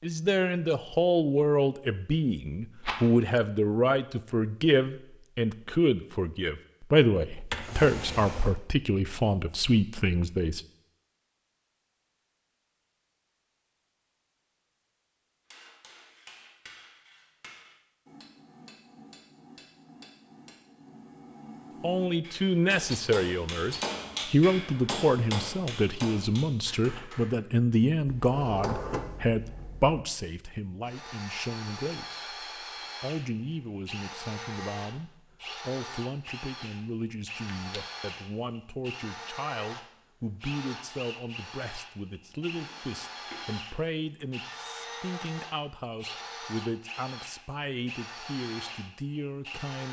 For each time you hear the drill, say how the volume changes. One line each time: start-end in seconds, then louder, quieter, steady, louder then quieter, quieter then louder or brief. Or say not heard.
30.9-49.8 steady.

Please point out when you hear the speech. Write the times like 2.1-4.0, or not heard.
0.0-10.6, 21.8-49.8.